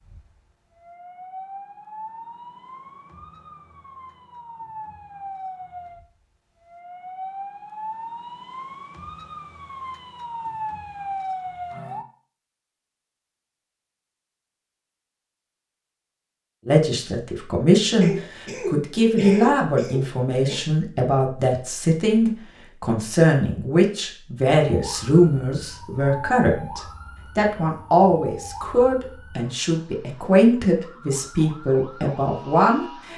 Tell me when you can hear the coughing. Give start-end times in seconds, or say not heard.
18.0-20.6.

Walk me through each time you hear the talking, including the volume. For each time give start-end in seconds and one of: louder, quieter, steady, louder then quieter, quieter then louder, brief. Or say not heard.
16.6-33.1 steady.